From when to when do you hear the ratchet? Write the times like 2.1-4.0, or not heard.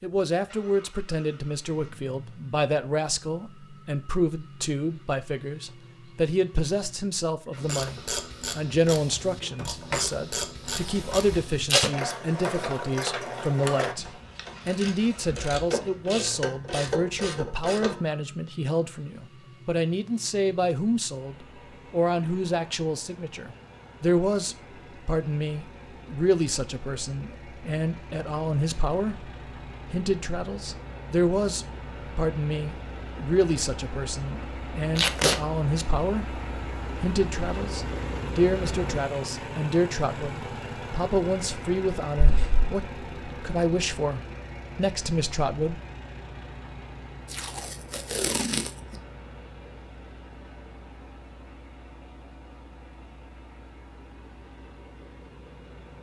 7.5-18.0.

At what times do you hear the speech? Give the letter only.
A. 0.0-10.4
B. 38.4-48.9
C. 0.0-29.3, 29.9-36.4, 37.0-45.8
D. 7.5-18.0
C.